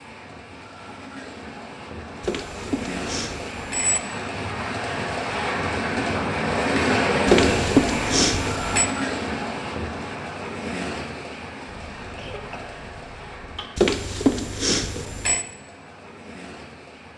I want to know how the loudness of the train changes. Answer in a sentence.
The loudness of the train goes up, then down.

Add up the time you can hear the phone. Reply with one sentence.
The phone can be heard for 5 seconds in total.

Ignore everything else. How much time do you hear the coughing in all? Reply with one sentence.
You can hear the coughing for 2 seconds altogether.